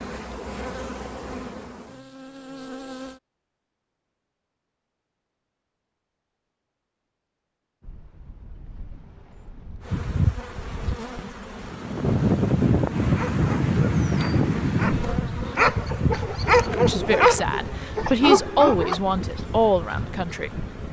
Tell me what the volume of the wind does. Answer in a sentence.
The volume of the wind goes up, then down.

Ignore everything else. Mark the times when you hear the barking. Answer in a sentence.
The barking can be heard from 13.0 to 19.0 s.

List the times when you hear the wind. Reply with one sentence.
The wind can be heard from 7.8 to 20.8 s.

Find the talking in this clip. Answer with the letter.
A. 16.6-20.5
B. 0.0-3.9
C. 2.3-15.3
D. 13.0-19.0
A.